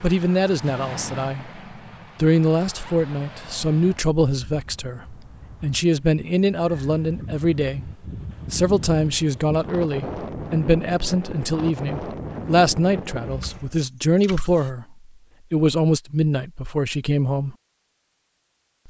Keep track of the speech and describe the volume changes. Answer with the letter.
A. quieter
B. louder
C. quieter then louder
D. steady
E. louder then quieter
D.